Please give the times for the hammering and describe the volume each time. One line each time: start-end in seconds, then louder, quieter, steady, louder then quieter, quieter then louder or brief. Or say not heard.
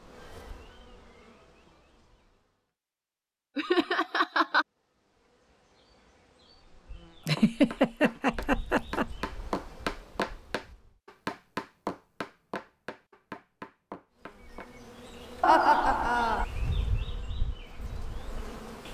7.3-14.7 louder then quieter.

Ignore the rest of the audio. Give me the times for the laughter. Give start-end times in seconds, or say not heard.
3.5-4.7, 7.2-9.1, 15.4-16.4.